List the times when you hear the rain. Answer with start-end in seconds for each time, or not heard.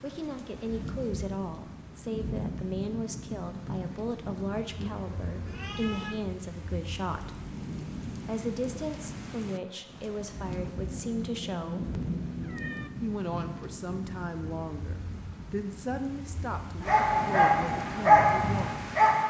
0.0-19.2.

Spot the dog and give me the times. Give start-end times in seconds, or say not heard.
16.8-19.2.